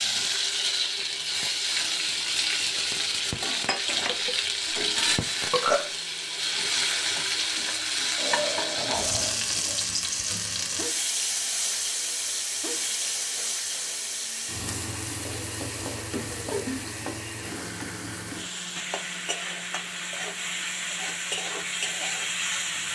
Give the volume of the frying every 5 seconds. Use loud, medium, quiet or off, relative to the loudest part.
loud, loud, loud, medium, loud.